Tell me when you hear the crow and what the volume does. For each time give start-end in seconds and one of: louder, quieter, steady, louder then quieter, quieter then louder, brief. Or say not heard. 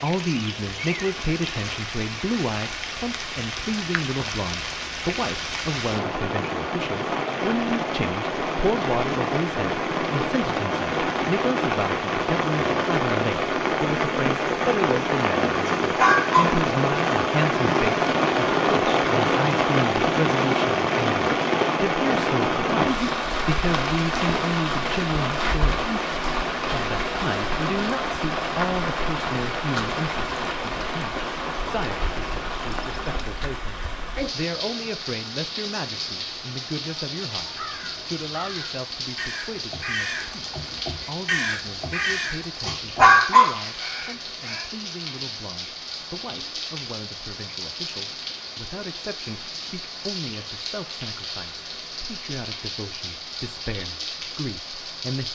37.5-44.7 louder then quieter.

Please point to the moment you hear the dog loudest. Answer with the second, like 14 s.
43 s.